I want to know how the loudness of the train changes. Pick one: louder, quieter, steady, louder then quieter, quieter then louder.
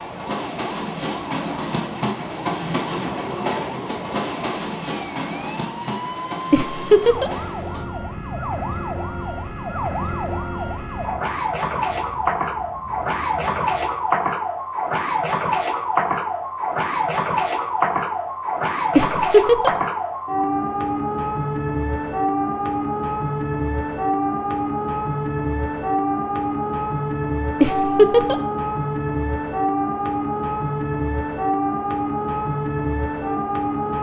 quieter.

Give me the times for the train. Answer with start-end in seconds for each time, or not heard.
0.0-14.2.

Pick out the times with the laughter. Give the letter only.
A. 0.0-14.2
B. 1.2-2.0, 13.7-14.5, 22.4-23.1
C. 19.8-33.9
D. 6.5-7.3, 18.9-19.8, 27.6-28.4
D.